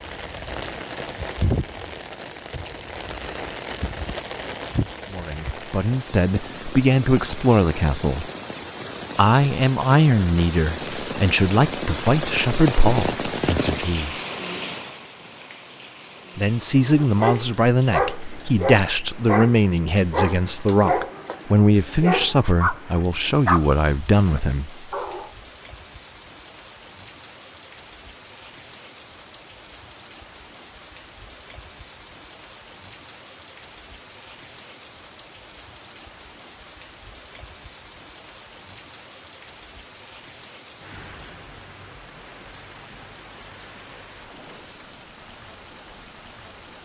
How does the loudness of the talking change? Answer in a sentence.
The volume of the talking stays about the same.